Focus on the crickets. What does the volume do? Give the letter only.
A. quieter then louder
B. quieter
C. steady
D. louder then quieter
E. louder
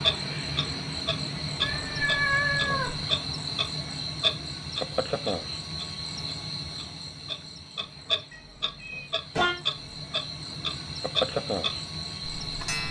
A.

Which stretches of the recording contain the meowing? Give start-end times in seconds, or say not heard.
1.6-3.0, 8.3-9.9.